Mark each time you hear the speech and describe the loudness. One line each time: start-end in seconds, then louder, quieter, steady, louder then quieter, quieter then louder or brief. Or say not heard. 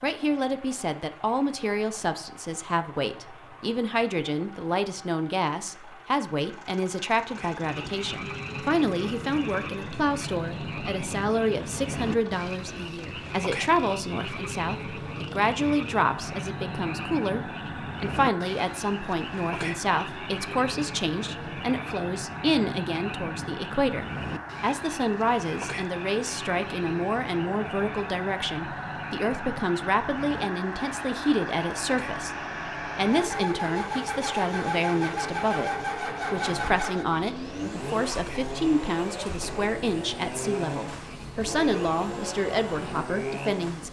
0.0-43.8 steady.